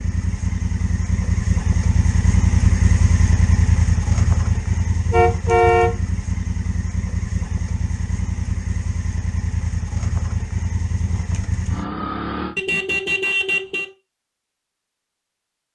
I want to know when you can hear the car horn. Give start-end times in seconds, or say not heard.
5.1-6.0, 12.6-13.9.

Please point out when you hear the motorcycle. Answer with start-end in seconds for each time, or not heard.
0.0-12.6.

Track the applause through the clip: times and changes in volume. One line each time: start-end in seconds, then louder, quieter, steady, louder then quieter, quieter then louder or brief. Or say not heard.
not heard.